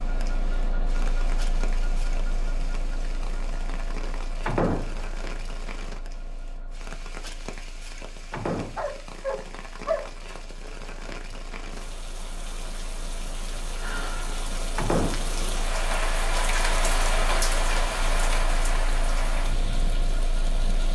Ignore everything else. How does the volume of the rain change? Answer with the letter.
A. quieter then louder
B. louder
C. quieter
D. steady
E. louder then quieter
B.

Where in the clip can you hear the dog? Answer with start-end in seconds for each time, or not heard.
8.8-10.1.